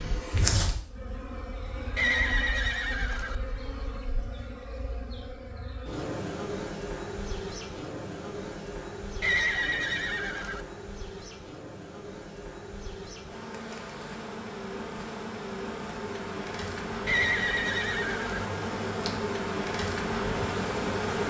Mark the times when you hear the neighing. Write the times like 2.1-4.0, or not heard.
1.9-3.4, 9.2-10.7, 17.1-18.4.